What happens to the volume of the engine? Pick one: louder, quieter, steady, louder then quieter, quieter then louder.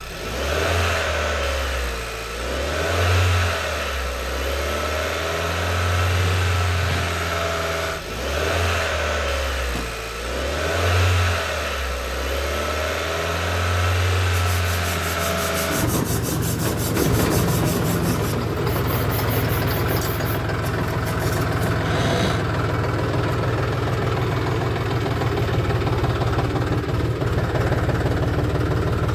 steady.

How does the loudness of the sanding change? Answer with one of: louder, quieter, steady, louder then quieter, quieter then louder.
louder then quieter.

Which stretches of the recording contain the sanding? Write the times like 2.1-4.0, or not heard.
14.3-21.6.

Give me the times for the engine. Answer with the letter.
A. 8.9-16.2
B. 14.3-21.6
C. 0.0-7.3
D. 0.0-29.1
D.